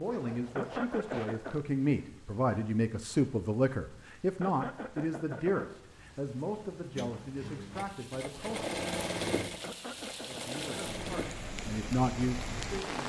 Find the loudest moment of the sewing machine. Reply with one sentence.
The loudest moment of the sewing machine is at 9 seconds.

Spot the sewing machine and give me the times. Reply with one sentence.
The sewing machine can be heard from 7.0 to 12.8 s.